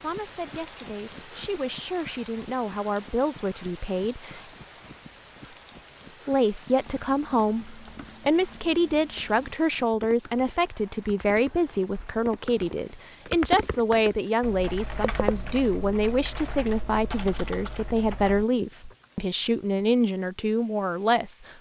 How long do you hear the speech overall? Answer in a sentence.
You can hear the speech for 20 seconds altogether.